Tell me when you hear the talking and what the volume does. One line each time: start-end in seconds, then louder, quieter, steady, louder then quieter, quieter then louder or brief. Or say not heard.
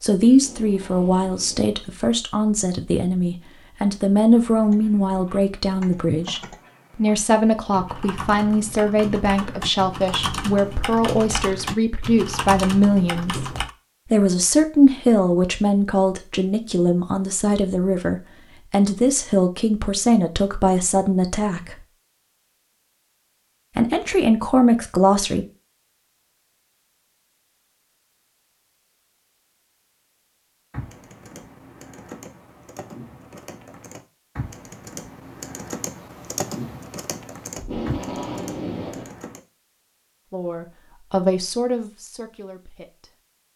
0.0-21.9 steady
23.8-25.4 brief
40.3-43.1 brief.